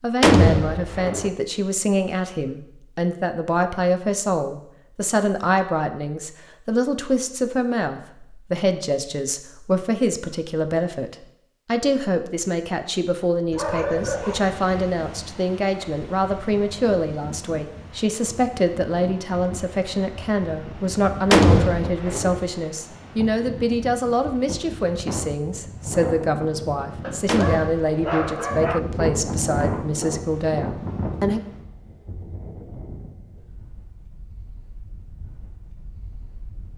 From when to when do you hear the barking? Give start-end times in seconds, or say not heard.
13.5-14.9, 27.0-28.8.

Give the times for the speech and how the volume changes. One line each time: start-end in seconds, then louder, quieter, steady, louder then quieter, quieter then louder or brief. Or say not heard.
0.0-31.4 steady.